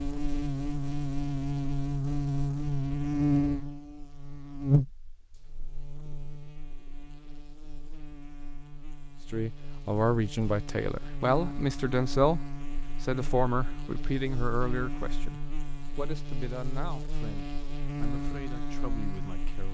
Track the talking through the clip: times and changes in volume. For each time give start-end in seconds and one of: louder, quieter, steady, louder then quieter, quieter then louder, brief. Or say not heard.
9.3-19.6 quieter.